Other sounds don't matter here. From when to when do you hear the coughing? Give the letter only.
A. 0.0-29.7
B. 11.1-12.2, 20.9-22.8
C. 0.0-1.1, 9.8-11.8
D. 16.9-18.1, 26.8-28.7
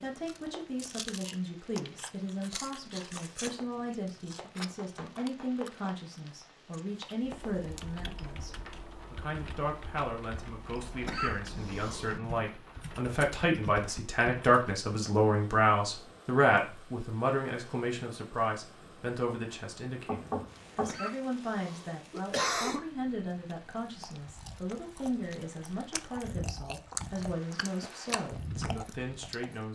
B.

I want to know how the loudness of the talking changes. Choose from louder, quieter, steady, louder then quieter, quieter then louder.
louder then quieter.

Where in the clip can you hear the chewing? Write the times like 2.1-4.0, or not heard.
0.0-8.1, 23.5-29.7.